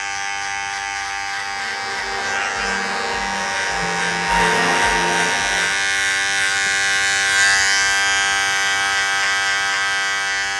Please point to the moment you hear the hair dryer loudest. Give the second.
5 s.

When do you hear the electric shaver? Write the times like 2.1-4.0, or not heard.
0.0-10.5.